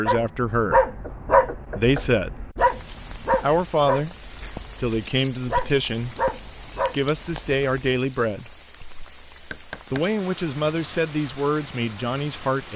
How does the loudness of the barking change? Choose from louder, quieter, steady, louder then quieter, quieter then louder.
quieter.